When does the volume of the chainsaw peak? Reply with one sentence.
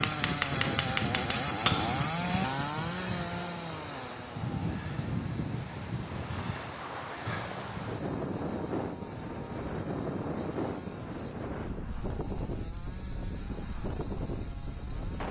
The volume of the chainsaw peaks at 2 seconds.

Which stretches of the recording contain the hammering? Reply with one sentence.
The hammering can be heard from 0.0 to 2.0 s.